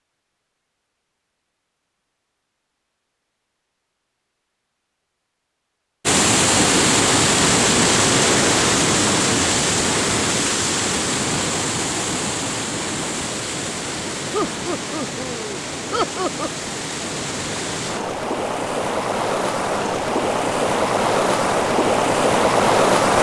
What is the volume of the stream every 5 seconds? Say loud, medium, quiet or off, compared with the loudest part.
off, loud, medium, medium, loud.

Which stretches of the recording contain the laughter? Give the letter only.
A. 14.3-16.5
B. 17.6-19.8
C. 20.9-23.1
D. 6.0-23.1
A.